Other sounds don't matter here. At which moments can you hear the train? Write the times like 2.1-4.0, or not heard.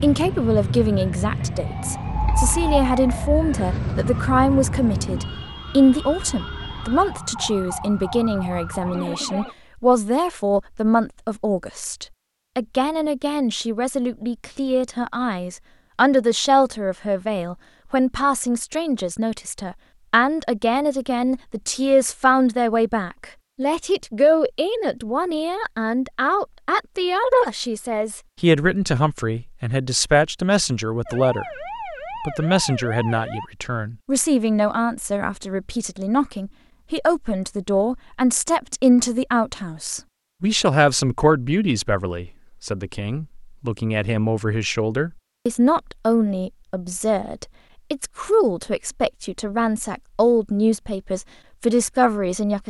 0.0-5.5.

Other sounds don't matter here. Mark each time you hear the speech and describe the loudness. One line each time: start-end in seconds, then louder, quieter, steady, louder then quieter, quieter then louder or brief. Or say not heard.
0.0-52.6 steady.